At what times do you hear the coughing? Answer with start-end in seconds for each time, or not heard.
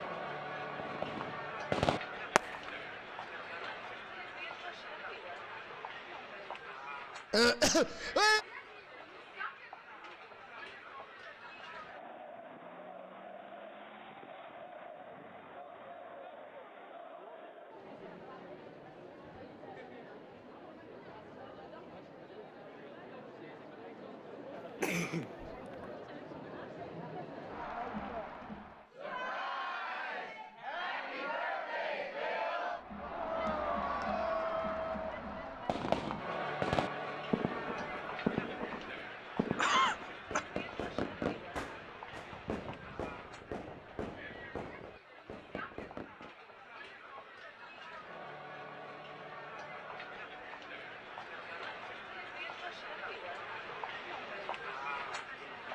7.3-8.4, 24.8-25.2, 39.5-40.4.